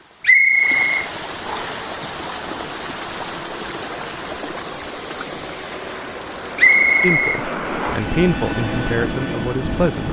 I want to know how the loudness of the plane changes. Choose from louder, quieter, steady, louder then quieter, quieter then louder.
louder.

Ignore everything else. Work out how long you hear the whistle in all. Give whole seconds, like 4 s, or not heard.
3 s.